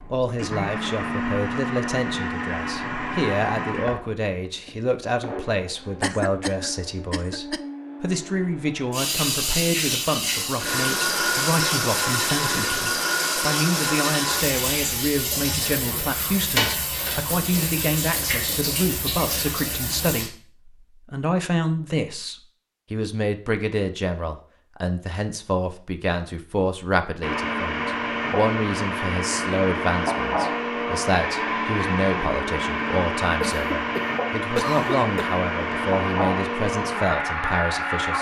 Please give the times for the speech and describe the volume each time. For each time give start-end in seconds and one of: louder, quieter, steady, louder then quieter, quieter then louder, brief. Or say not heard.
0.1-38.1 steady.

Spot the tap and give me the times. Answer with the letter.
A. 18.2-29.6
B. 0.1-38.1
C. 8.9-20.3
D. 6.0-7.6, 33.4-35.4
C.